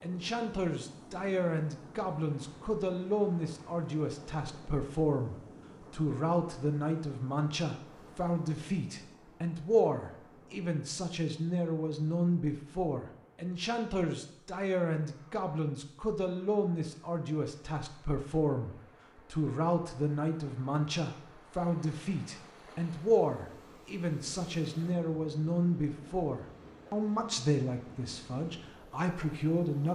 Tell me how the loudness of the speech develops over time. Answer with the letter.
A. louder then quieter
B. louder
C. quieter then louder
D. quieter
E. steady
E.